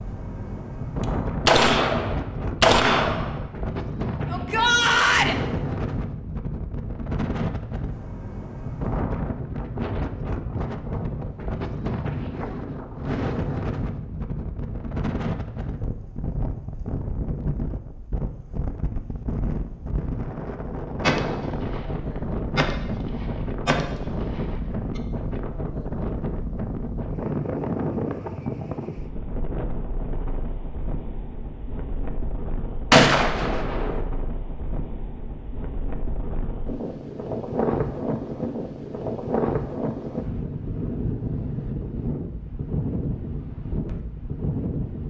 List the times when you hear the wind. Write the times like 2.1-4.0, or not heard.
0.0-45.0.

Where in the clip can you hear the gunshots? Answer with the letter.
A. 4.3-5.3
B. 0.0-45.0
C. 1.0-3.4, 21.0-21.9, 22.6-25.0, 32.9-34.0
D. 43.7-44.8
C.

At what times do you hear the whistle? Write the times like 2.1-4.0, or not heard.
not heard.